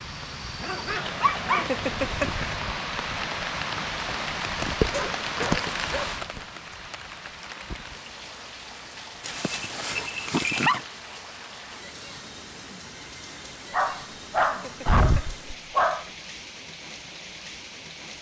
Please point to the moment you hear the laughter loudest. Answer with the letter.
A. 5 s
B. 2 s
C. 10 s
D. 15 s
B.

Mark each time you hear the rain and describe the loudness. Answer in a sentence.
The rain can be heard from 0.0 to 18.1 s, getting quieter.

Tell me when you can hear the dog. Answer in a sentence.
You can hear the dog from 0.6 to 1.6 s, from 4.9 to 6.2 s, from 9.2 to 10.8 s and from 13.7 to 16.1 s.